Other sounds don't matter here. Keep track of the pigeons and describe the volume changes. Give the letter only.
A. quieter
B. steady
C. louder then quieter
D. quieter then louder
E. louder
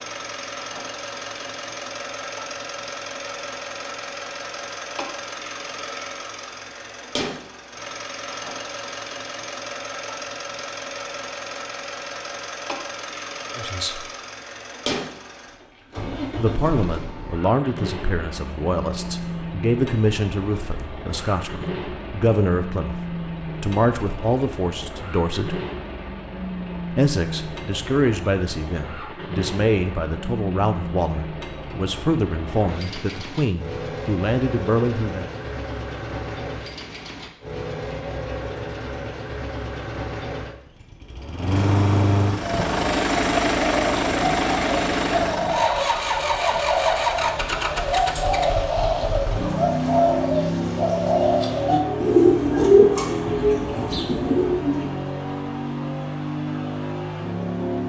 E.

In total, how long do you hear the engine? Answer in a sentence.
You can hear the engine for 58 seconds altogether.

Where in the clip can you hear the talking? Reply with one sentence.
The talking can be heard from 13.6 to 14.1 s, from 16.4 to 25.6 s and from 26.9 to 35.2 s.